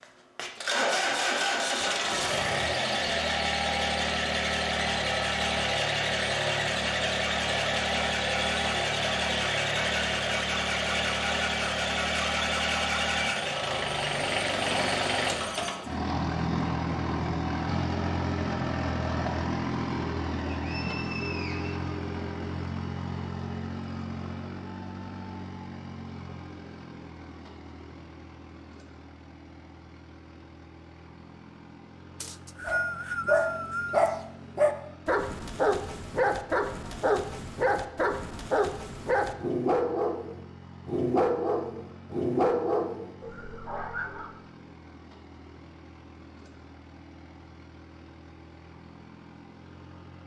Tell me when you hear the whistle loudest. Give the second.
33 s.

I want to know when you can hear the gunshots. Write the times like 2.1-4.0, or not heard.
not heard.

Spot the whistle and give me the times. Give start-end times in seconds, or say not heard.
20.6-21.9, 32.2-34.1.